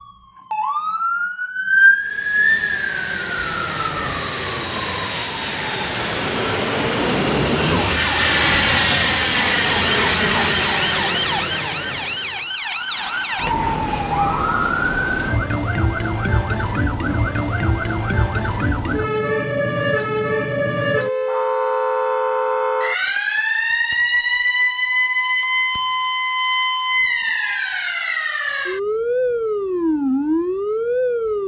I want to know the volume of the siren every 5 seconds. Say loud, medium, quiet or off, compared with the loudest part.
loud, medium, loud, loud, loud, loud, loud.